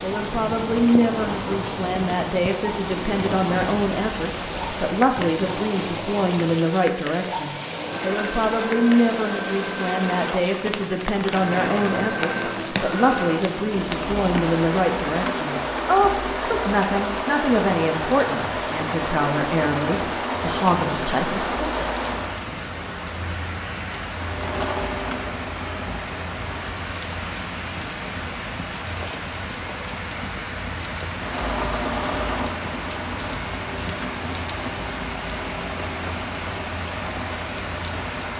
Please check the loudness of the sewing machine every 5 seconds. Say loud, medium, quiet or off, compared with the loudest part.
loud, loud, loud, loud, loud, medium, loud, medium.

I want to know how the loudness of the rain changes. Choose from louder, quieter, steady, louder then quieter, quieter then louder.
steady.